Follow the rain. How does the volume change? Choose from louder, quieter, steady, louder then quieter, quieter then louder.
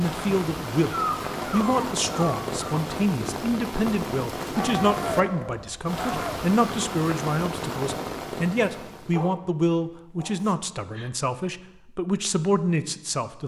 steady.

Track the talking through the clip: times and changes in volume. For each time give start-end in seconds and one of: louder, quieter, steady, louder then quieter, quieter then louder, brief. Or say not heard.
0.0-13.4 steady.